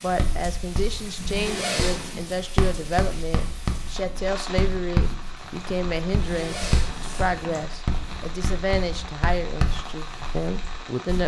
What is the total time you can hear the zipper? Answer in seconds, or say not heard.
2 s.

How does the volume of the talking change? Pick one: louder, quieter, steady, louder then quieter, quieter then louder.
steady.